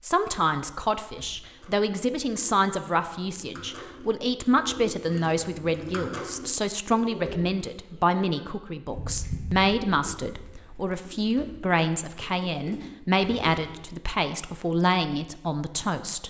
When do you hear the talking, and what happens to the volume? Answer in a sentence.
The talking can be heard from 0.0 to 16.2 s, at a steady volume.